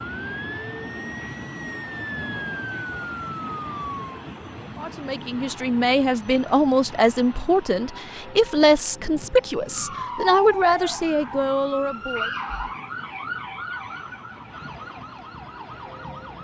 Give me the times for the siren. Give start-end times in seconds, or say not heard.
0.0-4.1, 9.7-16.3.